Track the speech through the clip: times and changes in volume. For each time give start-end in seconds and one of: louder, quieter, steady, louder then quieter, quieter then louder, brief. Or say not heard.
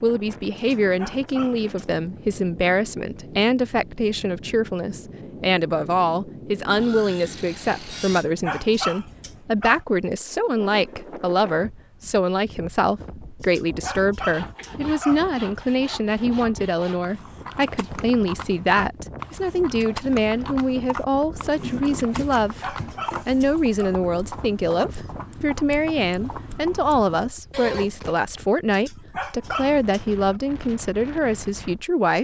0.0-32.1 steady.